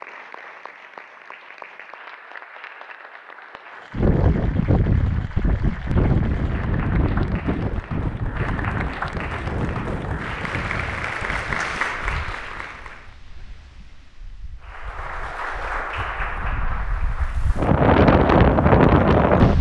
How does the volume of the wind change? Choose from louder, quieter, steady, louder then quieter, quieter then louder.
quieter then louder.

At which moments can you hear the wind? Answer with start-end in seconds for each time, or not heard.
3.9-19.5.